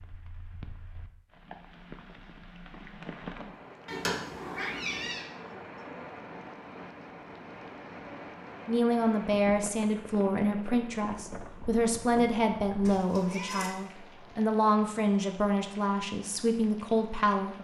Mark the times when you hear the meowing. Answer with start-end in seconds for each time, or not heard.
3.9-5.2, 12.8-13.8.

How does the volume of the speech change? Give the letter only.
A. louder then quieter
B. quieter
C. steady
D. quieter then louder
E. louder
C.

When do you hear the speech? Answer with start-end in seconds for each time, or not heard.
8.7-17.5.